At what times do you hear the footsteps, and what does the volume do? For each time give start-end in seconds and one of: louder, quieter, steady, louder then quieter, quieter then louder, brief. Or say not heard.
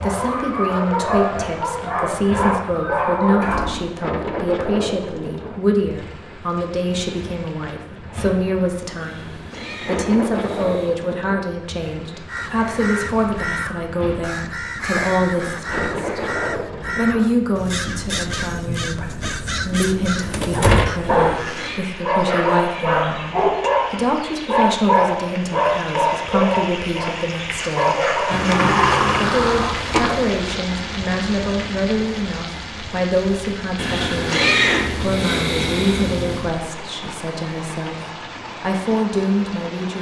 not heard.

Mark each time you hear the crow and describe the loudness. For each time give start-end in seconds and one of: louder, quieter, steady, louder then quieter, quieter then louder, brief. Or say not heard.
12.2-21.8 steady.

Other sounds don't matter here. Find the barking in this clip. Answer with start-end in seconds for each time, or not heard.
0.0-3.8, 20.5-28.4.